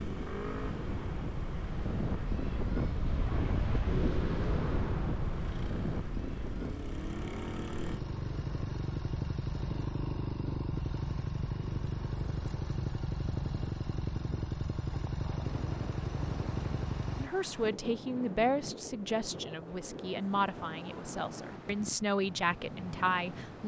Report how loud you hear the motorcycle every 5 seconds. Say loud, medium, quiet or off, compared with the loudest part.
medium, loud, loud, loud, off.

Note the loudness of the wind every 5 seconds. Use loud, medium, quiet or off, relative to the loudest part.
loud, medium, quiet, medium, medium.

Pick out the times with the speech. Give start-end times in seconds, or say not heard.
17.1-23.6.